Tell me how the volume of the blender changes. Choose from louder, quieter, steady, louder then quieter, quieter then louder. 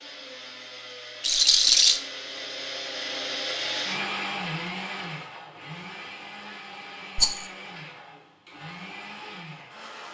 louder then quieter.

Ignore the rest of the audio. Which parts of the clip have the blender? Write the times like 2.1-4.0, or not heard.
0.0-10.0.